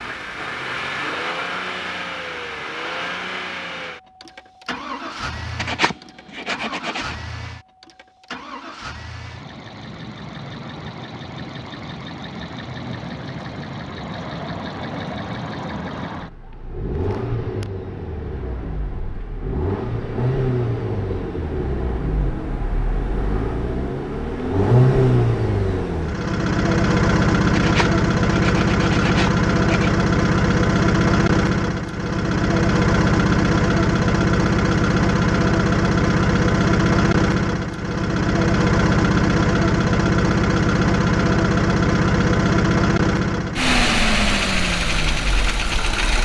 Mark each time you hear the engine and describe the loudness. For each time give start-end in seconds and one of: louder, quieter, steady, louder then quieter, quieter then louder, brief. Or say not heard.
0.0-46.2 louder.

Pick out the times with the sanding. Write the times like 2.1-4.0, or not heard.
5.5-7.2, 27.6-29.9.